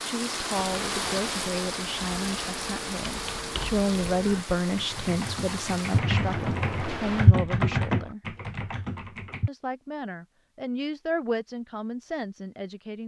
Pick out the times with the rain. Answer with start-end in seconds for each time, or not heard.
0.0-7.3.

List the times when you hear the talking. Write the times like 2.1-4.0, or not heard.
0.0-8.2, 9.4-13.0.